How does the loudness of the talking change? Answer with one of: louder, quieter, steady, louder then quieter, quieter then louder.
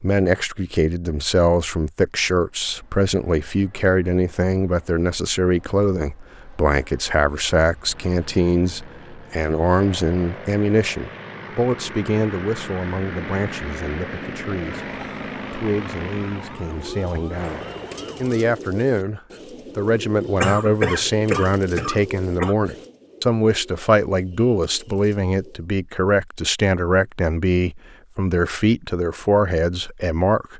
quieter then louder.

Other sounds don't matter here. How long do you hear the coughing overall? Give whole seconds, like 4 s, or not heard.
2 s.